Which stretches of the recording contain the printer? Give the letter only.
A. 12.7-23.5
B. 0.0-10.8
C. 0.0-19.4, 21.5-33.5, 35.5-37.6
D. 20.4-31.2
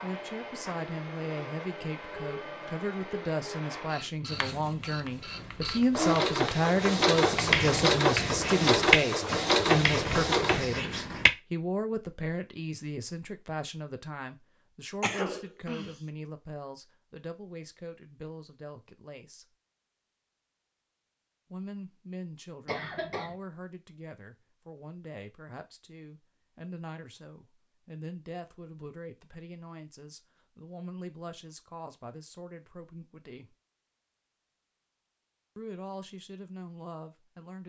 B.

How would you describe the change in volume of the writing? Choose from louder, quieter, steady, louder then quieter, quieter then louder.
louder then quieter.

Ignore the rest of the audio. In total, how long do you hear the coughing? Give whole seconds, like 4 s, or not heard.
2 s.